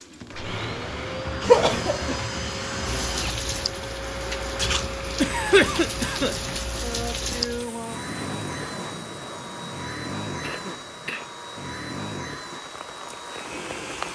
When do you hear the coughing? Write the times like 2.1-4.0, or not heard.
1.4-2.2, 5.2-6.4, 10.4-11.3.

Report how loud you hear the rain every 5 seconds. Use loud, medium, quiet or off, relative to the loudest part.
loud, loud, medium.